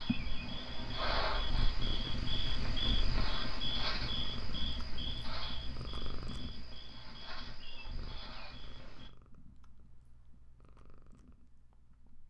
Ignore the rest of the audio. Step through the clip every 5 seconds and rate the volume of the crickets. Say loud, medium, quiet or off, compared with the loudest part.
loud, medium, off.